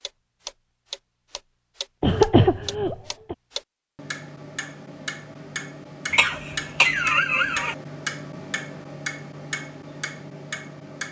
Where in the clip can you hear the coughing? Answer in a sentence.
You can hear the coughing from 2.0 to 3.4 s and from 6.1 to 7.8 s.